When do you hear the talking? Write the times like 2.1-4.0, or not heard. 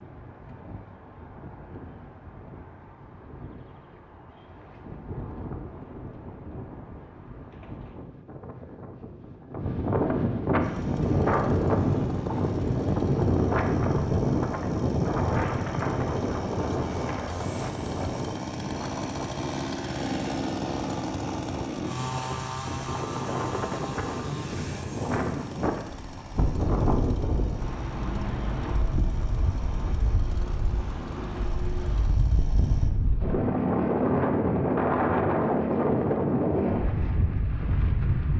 not heard.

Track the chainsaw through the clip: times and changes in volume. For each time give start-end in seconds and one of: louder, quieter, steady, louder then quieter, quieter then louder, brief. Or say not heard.
10.6-32.9 louder then quieter.